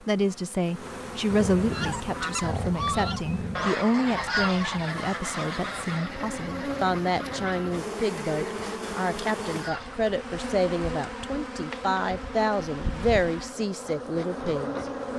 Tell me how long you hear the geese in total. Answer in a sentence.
You can hear the geese for 8 seconds altogether.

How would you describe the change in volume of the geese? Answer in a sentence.
The loudness of the geese goes down.